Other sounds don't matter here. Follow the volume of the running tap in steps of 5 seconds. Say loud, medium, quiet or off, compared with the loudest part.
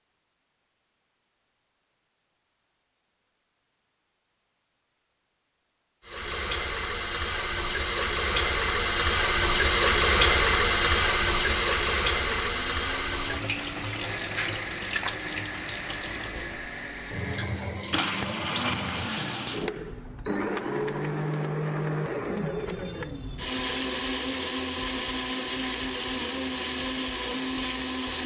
off, loud, loud, medium, off, off.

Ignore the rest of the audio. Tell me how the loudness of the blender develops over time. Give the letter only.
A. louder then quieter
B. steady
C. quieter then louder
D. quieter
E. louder
E.